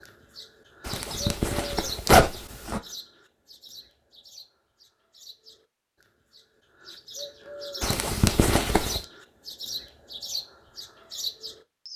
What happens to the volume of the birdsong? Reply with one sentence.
The loudness of the birdsong goes down, then up.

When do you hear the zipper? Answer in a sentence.
The zipper can be heard from 0.8 to 2.8 s and from 7.8 to 9.0 s.